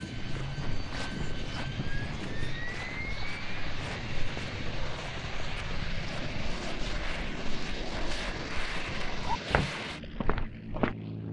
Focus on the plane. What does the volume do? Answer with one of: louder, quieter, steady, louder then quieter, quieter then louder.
steady.